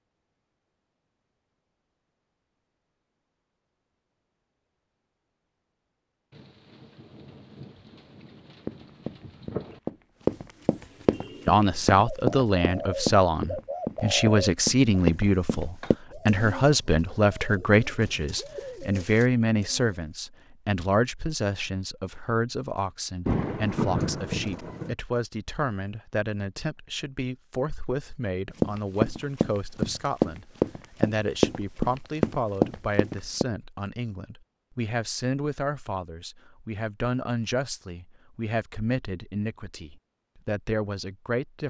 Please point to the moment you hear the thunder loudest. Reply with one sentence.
The volume of the thunder peaks at 24 seconds.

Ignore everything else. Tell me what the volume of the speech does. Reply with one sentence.
The volume of the speech goes down.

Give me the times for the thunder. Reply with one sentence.
The thunder can be heard from 6.3 to 9.8 s and from 23.2 to 24.9 s.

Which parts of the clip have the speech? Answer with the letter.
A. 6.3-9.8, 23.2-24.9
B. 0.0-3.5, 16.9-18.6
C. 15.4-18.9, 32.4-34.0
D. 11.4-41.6
D.